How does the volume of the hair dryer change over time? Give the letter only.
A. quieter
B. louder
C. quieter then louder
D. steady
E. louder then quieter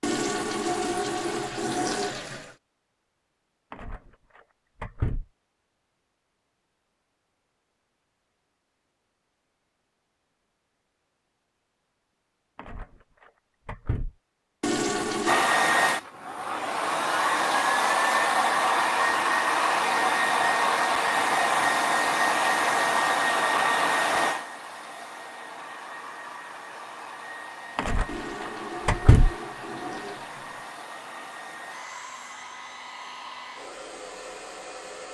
A.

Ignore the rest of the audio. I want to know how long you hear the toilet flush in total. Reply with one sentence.
The toilet flush can be heard for 6 seconds in total.